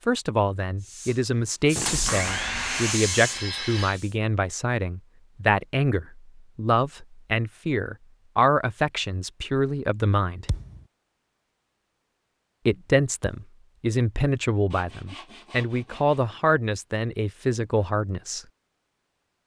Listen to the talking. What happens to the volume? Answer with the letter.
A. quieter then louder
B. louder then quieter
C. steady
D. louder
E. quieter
C.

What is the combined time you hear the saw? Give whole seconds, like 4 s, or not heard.
4 s.